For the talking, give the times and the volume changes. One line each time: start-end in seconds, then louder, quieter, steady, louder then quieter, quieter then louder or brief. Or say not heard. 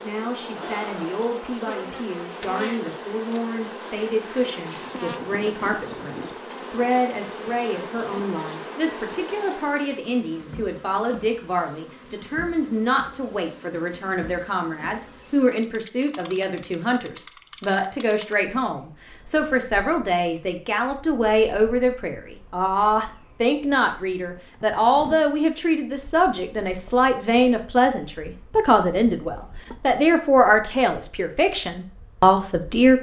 0.0-32.9 louder.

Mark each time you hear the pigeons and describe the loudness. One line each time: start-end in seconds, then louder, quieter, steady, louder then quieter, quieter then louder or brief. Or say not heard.
not heard.